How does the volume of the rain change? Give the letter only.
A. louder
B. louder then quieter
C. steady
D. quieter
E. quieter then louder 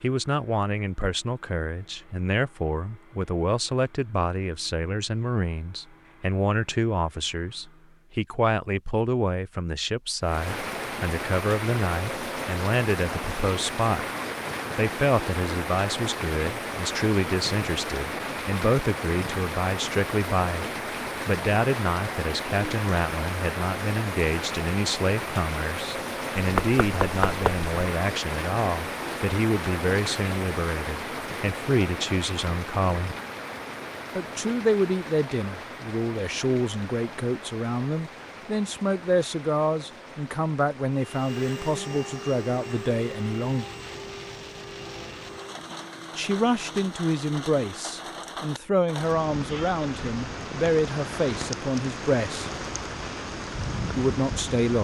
E.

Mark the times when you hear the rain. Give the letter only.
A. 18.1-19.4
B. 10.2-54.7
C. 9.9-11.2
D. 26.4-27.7
B.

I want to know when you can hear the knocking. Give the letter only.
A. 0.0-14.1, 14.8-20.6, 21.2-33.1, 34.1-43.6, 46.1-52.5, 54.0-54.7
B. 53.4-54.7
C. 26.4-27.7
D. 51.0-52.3
C.